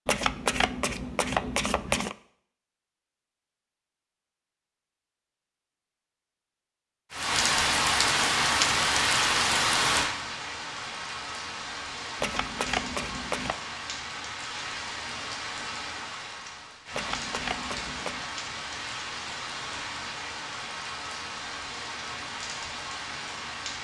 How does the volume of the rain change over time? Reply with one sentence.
The volume of the rain goes down.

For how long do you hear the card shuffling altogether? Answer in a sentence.
You can hear the card shuffling for 5 seconds altogether.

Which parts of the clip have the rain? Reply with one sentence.
The rain can be heard from 7.1 to 23.8 s.